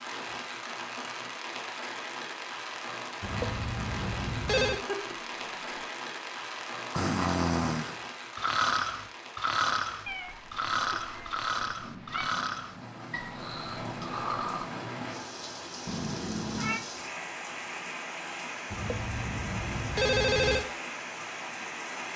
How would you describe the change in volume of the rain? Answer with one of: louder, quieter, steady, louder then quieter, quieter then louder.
quieter then louder.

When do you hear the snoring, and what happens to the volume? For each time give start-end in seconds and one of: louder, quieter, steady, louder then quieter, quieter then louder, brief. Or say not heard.
6.9-14.7 quieter.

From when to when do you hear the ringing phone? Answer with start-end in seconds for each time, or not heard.
3.2-4.8, 18.7-20.6.